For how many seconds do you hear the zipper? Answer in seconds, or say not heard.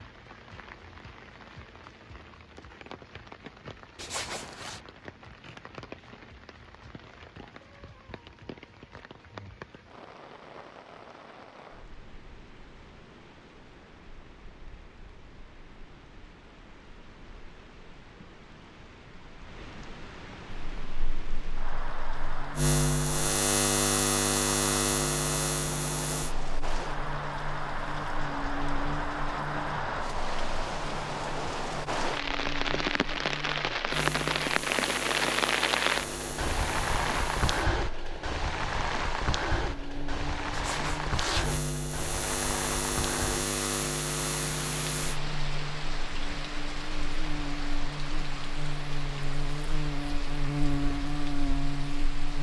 2 s.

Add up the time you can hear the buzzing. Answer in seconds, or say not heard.
32 s.